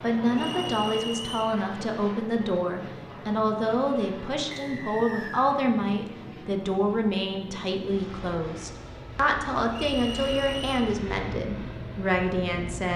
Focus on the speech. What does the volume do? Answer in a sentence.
The loudness of the speech stays about the same.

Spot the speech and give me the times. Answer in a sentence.
You can hear the speech from 0.0 to 12.9 s.